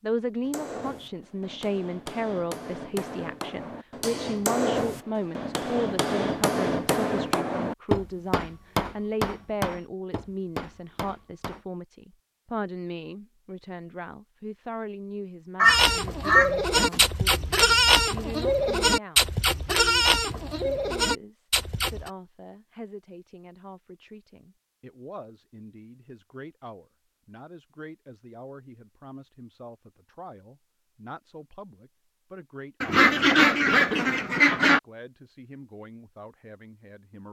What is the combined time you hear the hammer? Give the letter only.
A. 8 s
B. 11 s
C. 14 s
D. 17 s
B.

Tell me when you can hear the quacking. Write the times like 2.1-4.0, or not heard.
15.6-17.1, 32.8-34.8.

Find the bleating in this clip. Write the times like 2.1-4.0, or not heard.
15.7-22.1.